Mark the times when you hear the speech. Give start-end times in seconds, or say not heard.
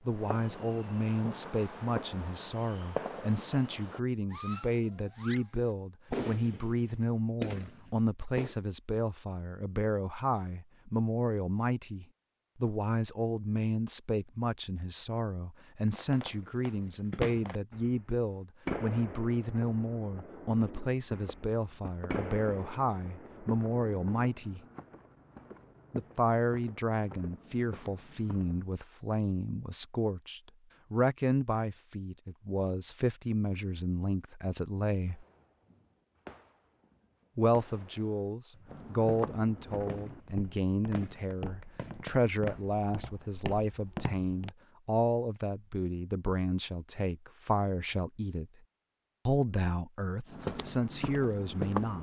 0.1-24.6, 25.9-35.2, 37.4-48.5, 49.2-51.9.